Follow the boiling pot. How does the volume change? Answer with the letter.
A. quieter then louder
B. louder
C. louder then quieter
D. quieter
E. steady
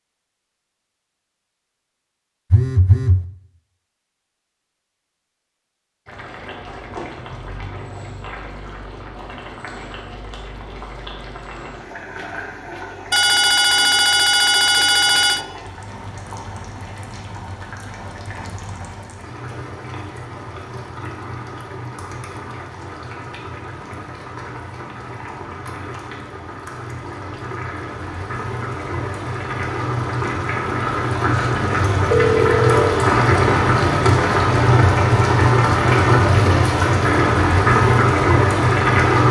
B.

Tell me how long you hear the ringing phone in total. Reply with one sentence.
You can hear the ringing phone for 5 seconds altogether.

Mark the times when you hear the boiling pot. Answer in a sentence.
You can hear the boiling pot from 6.0 to 39.2 s.